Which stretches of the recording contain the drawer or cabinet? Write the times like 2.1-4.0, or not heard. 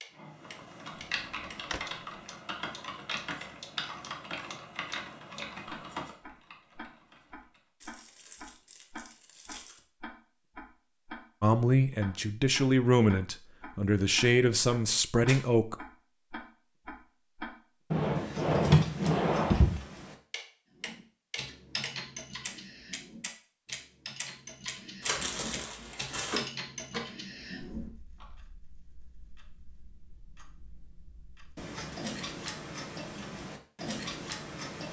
1.1-1.9, 17.9-19.8.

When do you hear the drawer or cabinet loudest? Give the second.
19 s.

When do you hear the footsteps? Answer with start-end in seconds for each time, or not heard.
not heard.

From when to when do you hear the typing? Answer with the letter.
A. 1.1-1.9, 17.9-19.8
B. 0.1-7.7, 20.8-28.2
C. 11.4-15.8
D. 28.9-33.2
B.